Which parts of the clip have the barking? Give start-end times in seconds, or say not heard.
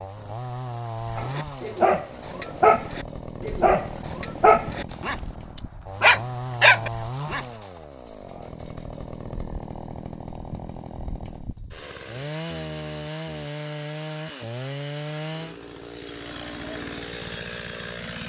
1.1-7.5.